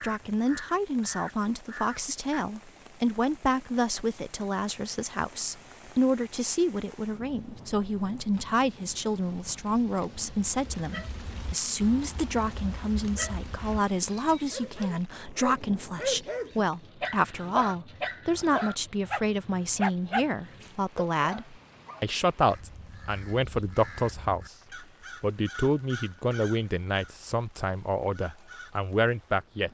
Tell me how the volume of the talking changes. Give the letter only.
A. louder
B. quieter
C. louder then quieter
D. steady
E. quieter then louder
D.